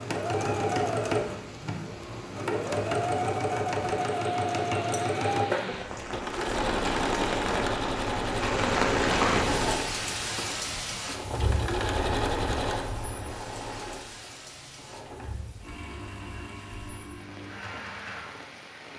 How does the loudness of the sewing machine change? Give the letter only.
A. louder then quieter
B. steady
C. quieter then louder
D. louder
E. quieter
E.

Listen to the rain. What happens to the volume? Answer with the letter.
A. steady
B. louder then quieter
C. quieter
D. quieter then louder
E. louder
B.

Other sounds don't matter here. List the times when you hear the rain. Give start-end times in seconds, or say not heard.
0.0-18.9.